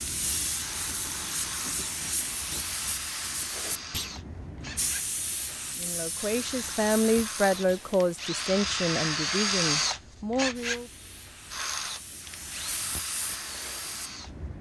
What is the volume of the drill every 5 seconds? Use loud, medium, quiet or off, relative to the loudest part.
medium, loud, medium.